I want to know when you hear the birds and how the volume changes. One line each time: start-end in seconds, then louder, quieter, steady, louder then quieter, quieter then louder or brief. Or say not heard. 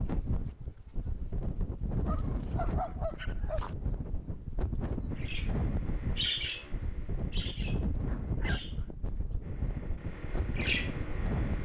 5.1-11.6 quieter then louder.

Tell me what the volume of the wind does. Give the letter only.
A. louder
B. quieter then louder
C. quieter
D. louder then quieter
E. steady
E.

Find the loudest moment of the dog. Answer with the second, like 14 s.
3 s.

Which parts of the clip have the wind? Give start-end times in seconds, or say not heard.
0.0-11.6.